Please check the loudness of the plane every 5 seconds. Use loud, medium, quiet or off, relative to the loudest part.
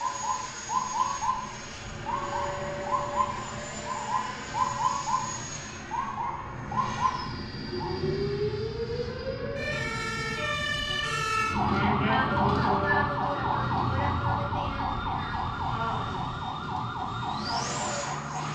loud, loud, medium, loud.